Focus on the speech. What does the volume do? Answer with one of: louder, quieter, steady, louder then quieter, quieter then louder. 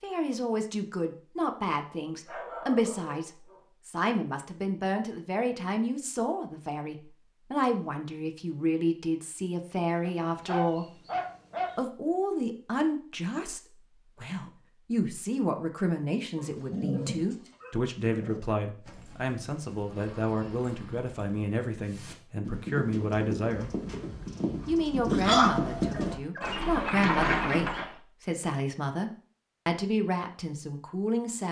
steady.